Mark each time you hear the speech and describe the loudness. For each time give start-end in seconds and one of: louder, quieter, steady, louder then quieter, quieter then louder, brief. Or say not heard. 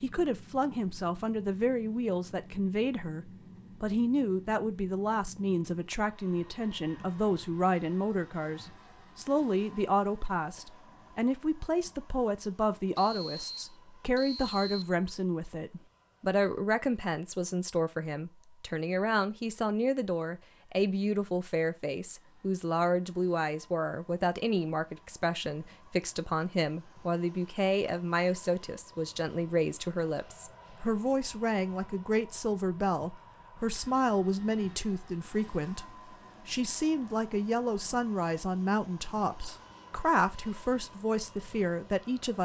0.0-42.4 steady.